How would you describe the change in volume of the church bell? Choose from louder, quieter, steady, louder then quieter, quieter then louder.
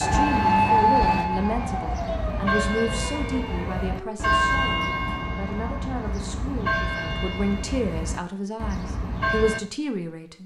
louder then quieter.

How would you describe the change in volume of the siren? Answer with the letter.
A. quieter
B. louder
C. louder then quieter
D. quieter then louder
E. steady
A.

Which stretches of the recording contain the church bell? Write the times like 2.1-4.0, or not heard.
0.1-9.6.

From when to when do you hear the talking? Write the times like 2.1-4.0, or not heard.
0.0-10.4.